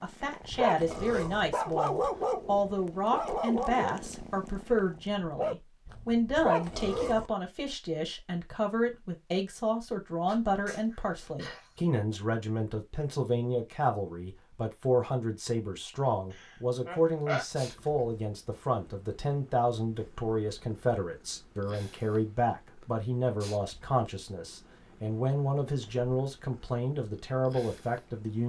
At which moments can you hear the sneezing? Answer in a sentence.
You can hear the sneezing from 10.2 to 11.8 s and from 16.3 to 17.4 s.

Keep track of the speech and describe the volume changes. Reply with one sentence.
The volume of the speech stays about the same.